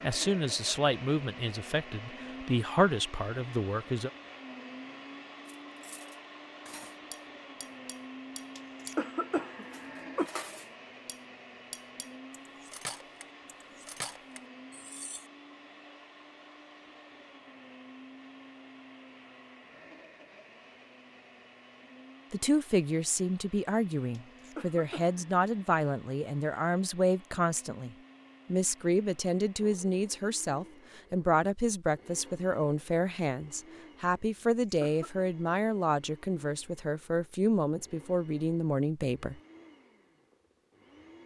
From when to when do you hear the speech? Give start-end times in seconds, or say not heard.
0.0-4.1, 22.3-39.4.